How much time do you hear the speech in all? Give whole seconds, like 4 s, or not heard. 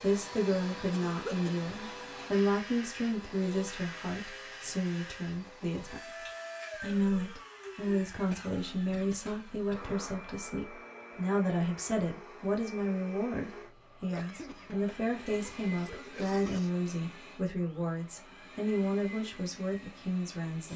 20 s.